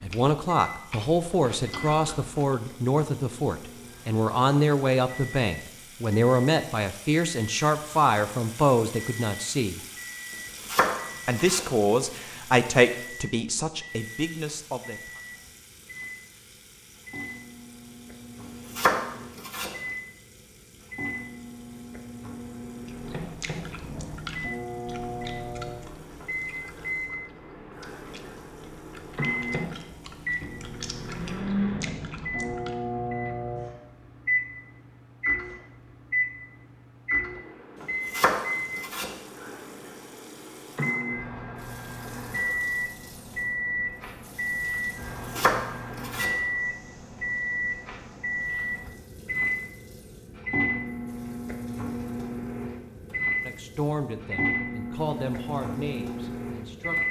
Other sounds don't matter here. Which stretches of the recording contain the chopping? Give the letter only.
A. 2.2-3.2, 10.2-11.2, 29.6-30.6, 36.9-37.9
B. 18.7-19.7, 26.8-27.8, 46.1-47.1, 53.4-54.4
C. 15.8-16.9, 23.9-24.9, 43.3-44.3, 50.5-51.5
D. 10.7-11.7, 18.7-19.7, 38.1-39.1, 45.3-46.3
D.